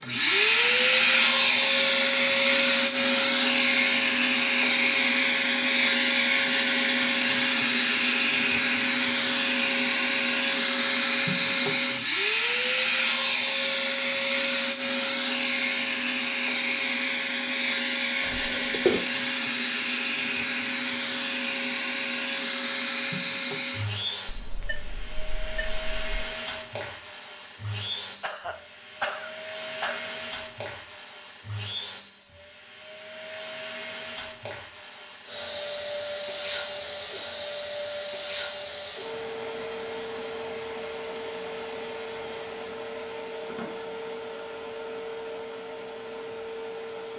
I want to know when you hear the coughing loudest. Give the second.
19 s.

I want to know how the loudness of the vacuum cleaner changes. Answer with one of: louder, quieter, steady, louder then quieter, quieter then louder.
quieter.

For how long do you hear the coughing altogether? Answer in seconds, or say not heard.
3 s.